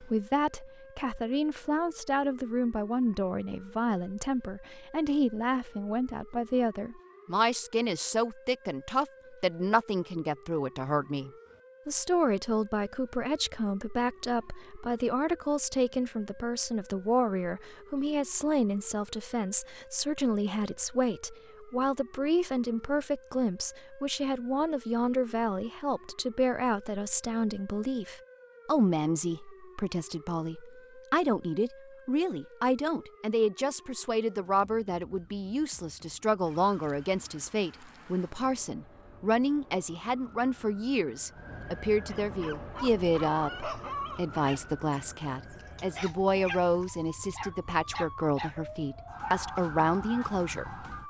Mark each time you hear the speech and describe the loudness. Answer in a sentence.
You can hear the speech from 0.0 to 50.9 s, at a steady volume.